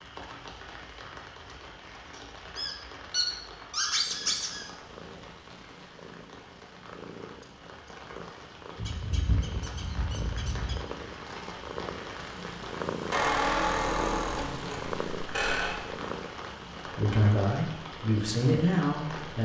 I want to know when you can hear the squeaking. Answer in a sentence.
You can hear the squeaking from 2.1 to 4.7 s, from 8.8 to 10.8 s and from 13.1 to 15.8 s.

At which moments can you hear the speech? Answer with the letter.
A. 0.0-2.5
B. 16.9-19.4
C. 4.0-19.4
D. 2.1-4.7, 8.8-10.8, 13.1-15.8
B.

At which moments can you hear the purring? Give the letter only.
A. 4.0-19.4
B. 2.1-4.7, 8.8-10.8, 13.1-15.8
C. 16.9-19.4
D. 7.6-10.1
A.